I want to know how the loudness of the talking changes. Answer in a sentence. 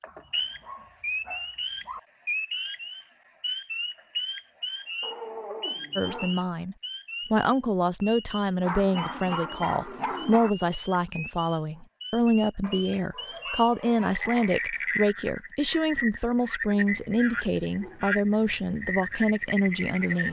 The loudness of the talking stays about the same.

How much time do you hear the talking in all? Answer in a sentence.
You can hear the talking for 14 seconds altogether.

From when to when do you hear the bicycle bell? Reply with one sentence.
The bicycle bell can't be heard in this clip.